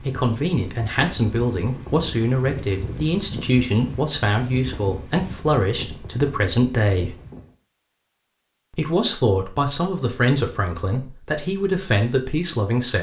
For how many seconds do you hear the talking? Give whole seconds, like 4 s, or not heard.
11 s.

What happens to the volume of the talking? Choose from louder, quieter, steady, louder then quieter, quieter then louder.
steady.